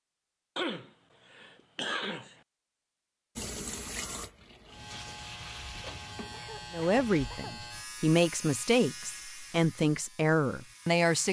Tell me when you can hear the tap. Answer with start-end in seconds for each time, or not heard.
3.4-6.5.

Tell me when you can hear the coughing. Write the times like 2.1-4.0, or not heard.
0.6-2.4, 6.3-7.6.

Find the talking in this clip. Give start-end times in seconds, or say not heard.
6.7-11.2.